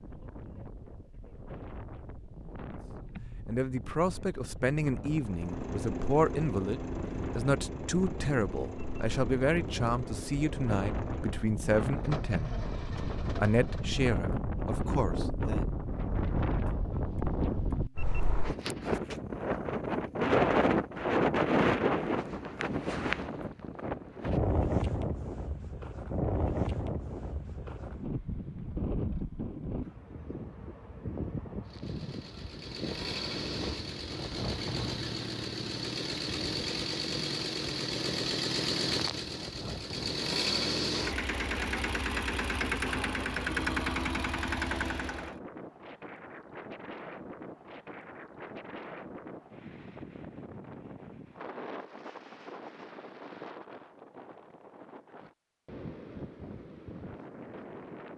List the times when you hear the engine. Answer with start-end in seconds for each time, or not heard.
5.2-14.1, 31.6-45.4.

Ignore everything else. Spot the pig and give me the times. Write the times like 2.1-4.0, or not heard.
not heard.